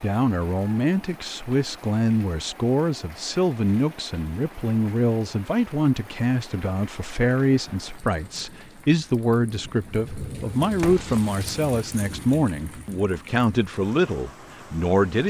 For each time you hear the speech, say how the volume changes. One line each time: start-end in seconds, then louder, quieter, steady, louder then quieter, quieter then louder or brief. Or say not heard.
0.0-15.2 steady.